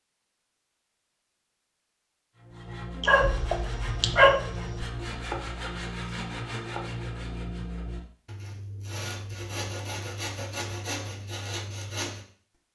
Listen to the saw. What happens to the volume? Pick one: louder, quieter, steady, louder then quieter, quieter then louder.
steady.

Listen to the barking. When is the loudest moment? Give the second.
4 s.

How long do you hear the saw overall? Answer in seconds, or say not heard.
10 s.